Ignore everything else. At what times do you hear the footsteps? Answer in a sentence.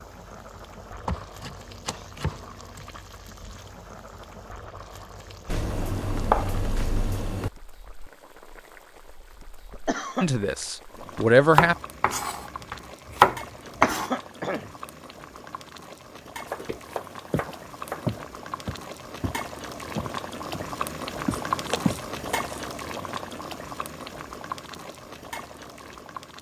You can hear the footsteps from 16.6 to 22.1 s.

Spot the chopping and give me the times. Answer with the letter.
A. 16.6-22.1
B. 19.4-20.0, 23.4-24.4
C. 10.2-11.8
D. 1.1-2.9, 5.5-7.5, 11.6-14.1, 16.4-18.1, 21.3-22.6
D.